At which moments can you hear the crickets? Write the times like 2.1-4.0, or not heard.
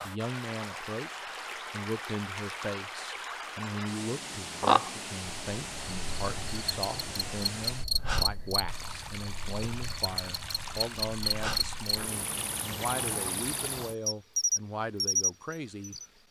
4.4-16.1.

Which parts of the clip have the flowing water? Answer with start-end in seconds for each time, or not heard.
0.0-13.9.